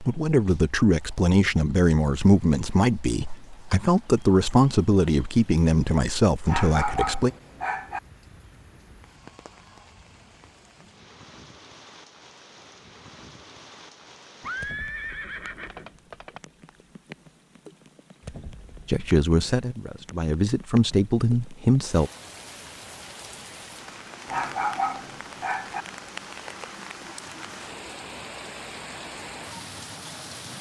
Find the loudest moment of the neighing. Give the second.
15 s.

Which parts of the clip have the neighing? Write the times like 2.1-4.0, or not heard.
14.4-16.4.